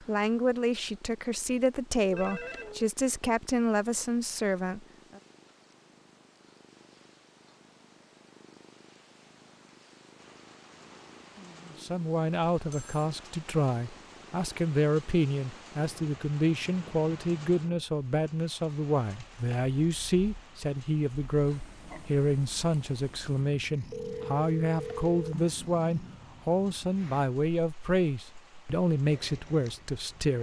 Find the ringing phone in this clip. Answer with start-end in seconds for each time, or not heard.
2.1-3.0, 12.6-13.1, 23.9-25.4.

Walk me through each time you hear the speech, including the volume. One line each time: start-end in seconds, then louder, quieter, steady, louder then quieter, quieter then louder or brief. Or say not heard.
0.0-5.2 steady
11.7-30.3 steady.